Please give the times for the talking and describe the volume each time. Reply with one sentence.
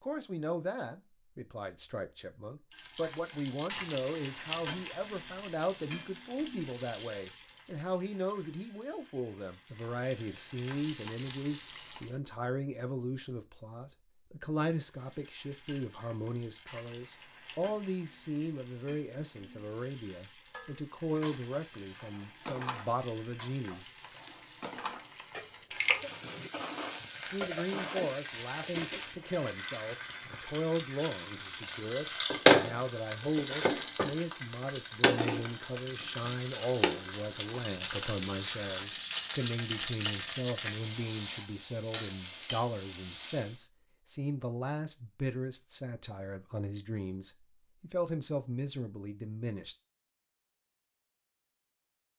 The talking can be heard from 0.0 to 23.9 s, at a steady volume; and from 27.2 to 49.8 s, at a steady volume.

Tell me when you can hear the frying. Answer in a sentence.
You can hear the frying from 2.7 to 12.2 s and from 14.8 to 43.6 s.